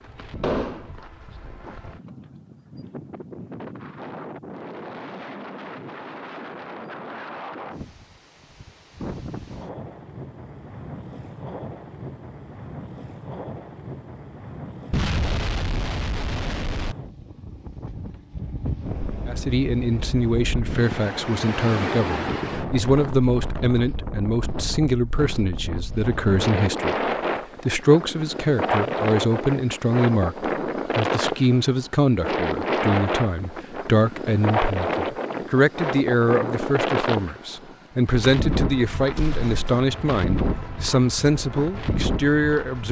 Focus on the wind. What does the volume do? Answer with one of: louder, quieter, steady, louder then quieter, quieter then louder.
louder.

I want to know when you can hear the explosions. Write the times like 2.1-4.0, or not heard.
0.4-0.9, 14.9-16.9, 39.0-39.8.